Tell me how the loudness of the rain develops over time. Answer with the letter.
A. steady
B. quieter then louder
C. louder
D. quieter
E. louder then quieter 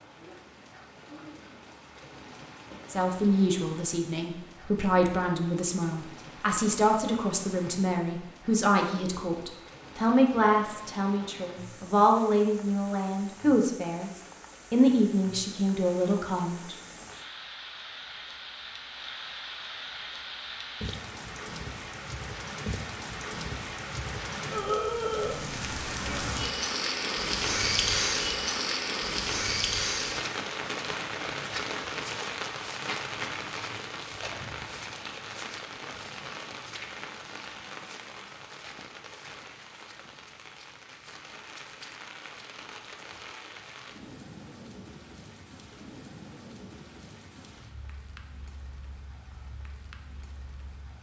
E.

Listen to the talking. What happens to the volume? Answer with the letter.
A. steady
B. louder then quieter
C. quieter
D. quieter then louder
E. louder
A.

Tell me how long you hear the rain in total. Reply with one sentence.
The rain can be heard for 51 seconds in total.